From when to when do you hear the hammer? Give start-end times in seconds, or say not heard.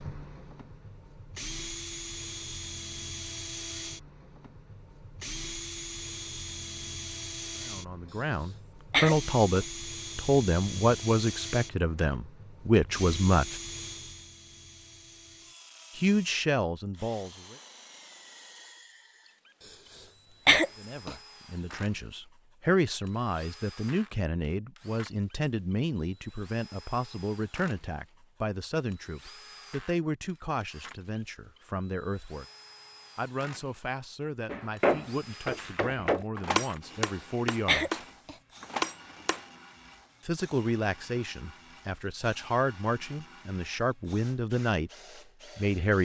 34.5-39.4.